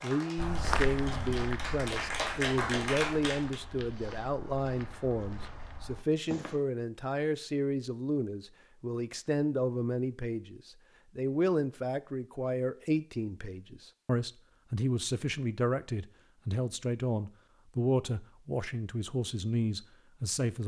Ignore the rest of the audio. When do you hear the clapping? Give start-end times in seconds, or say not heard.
0.0-3.6.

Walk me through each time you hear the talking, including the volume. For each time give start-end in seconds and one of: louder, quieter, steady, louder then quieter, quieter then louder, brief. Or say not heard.
0.0-20.6 steady.